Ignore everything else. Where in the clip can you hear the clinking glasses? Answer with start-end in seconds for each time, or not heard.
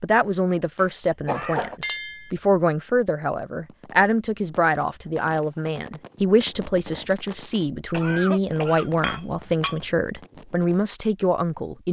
1.8-2.3, 9.0-9.8.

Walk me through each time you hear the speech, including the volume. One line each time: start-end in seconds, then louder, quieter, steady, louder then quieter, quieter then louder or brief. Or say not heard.
0.0-11.8 steady.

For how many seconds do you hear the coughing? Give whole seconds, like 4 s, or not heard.
2 s.